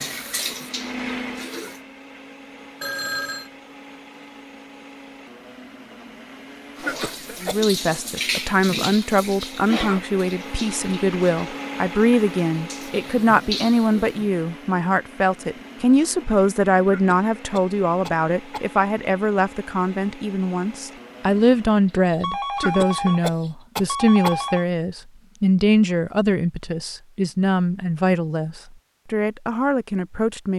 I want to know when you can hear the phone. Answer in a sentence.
You can hear the phone from 2.8 to 3.5 s and from 21.9 to 24.6 s.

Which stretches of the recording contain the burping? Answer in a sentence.
The burping can't be heard in this clip.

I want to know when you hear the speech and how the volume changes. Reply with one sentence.
The speech can be heard from 7.4 to 30.5 s, at a steady volume.